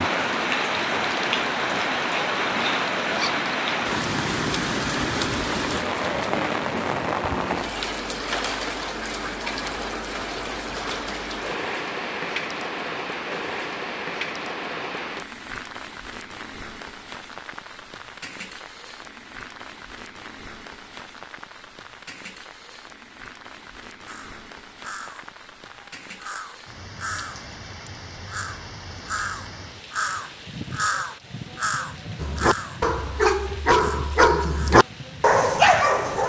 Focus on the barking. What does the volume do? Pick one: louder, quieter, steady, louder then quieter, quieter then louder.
louder.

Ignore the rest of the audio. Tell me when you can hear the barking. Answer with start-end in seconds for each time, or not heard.
32.2-36.2.